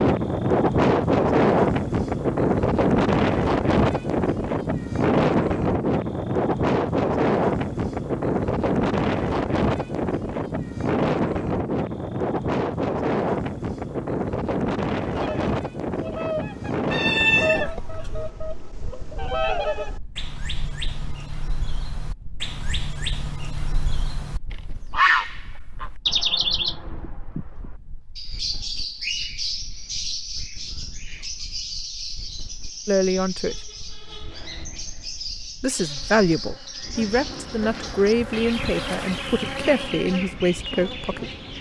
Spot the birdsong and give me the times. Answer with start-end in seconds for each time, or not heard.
15.1-41.5.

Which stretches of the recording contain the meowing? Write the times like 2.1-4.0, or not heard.
16.9-18.3.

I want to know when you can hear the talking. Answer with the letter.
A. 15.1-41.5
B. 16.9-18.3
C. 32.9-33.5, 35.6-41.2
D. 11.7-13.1
C.